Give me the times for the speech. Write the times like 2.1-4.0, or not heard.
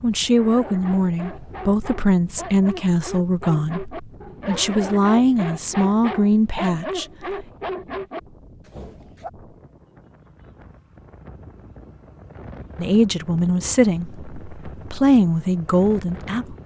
0.0-7.5, 12.8-16.6.